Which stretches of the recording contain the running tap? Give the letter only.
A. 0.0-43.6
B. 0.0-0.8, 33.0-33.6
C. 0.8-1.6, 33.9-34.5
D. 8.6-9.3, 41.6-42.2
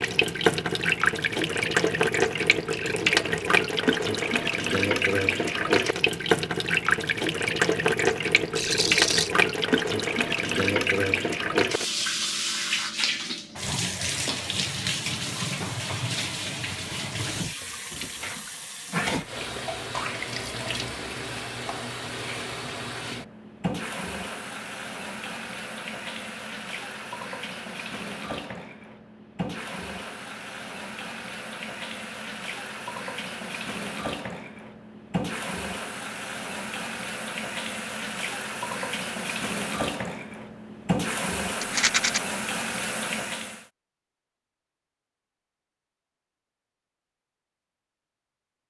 A.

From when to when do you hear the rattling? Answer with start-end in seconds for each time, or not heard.
8.6-9.3, 41.6-42.2.